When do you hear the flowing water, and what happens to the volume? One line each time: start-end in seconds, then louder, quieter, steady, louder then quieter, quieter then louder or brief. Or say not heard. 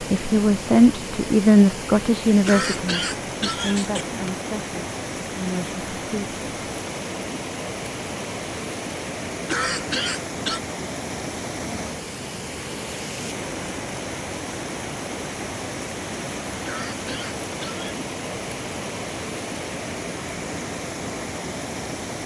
0.0-22.2 steady.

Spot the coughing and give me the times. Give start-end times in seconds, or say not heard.
2.5-4.3, 9.4-10.6, 16.6-17.9.